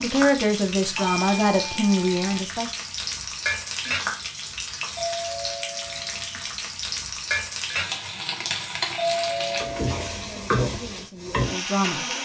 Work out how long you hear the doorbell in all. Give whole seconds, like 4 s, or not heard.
4 s.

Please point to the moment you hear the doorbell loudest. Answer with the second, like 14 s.
9 s.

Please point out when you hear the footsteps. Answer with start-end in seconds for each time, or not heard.
not heard.